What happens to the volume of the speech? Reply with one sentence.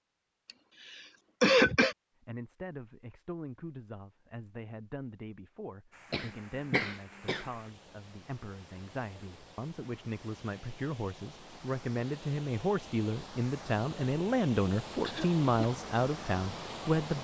The volume of the speech goes up.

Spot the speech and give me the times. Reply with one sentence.
The speech can be heard from 2.2 to 17.2 s.